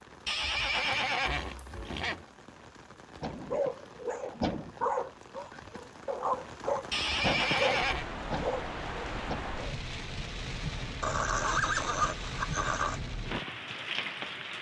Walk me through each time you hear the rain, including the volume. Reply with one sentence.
You can hear the rain from 0.0 to 14.5 s, getting louder.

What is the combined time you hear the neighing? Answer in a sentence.
The neighing can be heard for 5 seconds in total.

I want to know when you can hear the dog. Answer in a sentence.
The dog can be heard from 3.2 to 9.6 s.